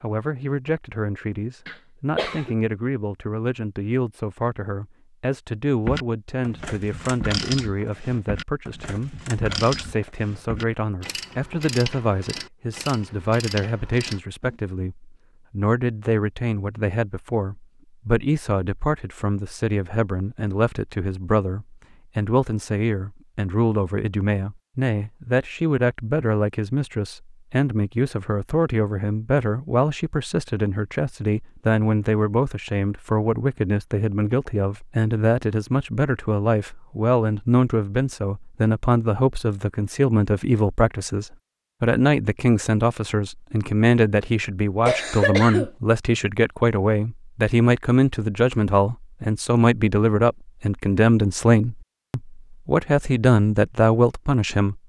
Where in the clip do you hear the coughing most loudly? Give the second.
45 s.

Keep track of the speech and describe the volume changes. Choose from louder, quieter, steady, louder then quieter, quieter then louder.
louder.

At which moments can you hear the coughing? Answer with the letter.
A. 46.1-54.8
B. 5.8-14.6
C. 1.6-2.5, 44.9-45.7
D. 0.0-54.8
C.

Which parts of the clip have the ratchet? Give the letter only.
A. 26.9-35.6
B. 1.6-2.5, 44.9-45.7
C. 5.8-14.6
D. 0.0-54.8
C.